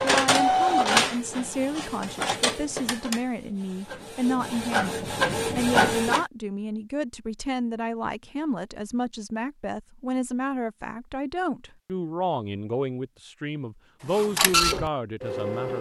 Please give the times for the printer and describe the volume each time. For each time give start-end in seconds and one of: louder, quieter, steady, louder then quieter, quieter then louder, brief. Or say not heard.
0.0-6.2 quieter then louder
14.1-15.7 brief.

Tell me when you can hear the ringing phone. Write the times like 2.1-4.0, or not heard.
not heard.